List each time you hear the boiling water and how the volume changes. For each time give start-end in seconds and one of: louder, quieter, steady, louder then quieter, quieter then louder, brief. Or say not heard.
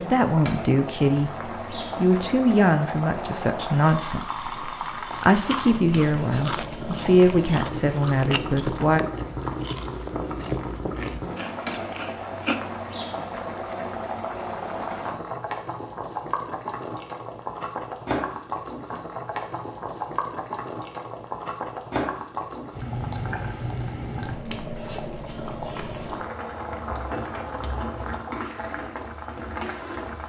0.0-30.2 steady.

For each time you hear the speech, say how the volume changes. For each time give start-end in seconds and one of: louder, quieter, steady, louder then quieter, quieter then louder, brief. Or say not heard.
0.1-9.0 steady.